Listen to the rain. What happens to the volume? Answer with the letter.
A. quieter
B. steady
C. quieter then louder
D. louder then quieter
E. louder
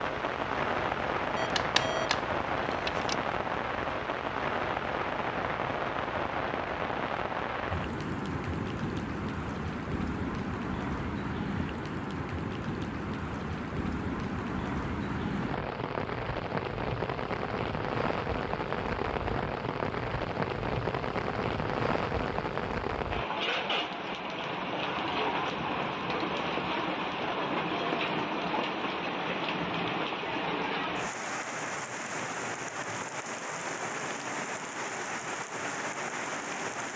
B.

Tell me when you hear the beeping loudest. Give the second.
2 s.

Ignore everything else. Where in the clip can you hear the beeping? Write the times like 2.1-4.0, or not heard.
1.4-3.1.